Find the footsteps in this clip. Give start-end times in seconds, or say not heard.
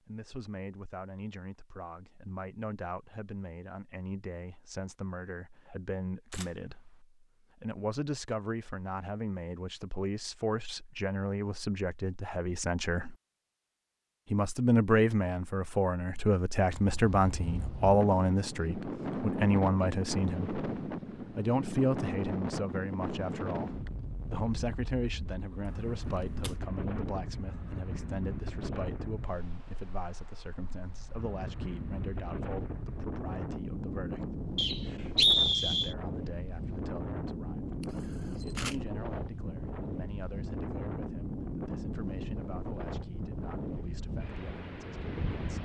not heard.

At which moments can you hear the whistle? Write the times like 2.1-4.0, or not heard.
34.5-36.0.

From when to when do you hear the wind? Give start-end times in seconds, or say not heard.
16.6-45.5.